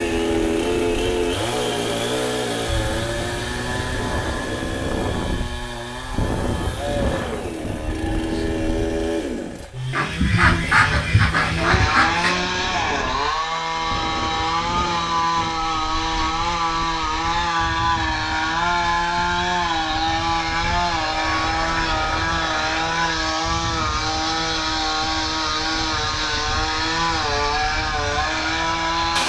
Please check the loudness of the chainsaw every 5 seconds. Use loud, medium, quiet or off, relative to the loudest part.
loud, medium, loud, loud, loud, loud.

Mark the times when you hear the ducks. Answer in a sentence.
You can hear the ducks from 9.9 to 12.5 s and from 21.1 to 23.1 s.